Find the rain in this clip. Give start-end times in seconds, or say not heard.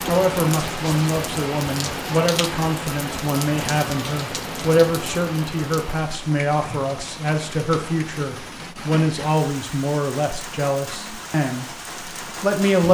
0.0-12.8.